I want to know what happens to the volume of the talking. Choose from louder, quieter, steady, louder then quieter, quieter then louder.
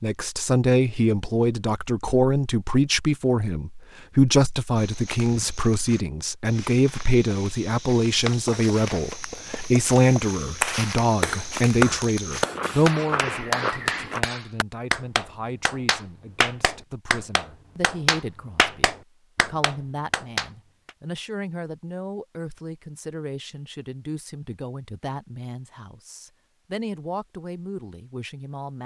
quieter.